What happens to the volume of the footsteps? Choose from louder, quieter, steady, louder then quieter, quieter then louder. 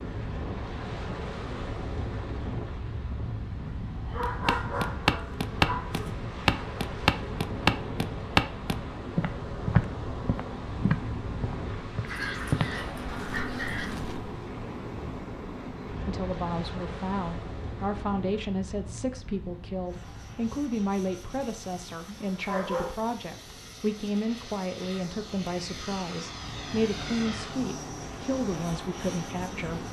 quieter.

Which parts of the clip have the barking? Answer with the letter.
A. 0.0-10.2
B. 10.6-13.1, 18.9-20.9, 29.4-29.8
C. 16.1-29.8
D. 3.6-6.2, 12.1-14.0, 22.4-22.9
D.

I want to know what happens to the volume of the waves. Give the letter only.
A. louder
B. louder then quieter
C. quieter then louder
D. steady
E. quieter
E.